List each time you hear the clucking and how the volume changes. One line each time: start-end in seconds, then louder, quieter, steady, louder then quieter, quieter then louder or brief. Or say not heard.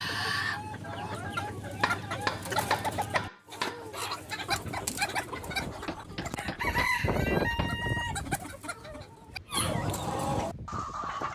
0.0-11.2 steady.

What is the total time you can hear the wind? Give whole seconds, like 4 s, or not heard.
7 s.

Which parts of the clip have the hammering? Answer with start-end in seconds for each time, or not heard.
1.8-3.8, 5.8-7.7.